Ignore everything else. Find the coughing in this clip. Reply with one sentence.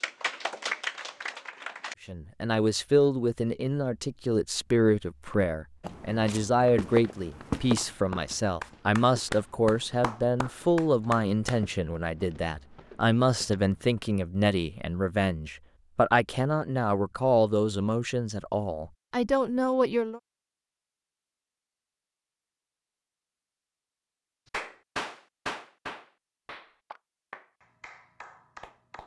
The coughing can't be heard in this clip.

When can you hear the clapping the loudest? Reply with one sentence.
The volume of the clapping peaks at 1 second.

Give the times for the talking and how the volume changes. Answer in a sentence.
The talking can be heard from 2.0 to 20.2 s, at a steady volume.